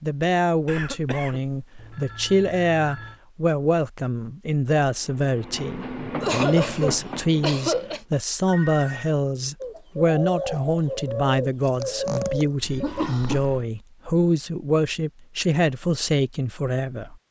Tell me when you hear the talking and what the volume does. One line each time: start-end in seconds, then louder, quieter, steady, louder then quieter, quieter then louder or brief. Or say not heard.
0.0-17.1 steady.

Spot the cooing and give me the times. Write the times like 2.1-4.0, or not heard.
9.6-13.1.